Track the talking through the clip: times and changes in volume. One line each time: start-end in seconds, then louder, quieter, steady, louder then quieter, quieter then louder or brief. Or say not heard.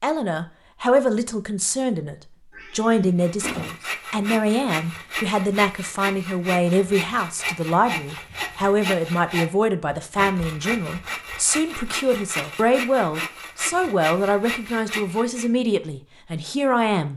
0.0-17.1 steady.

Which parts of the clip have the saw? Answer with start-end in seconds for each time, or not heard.
3.2-15.5.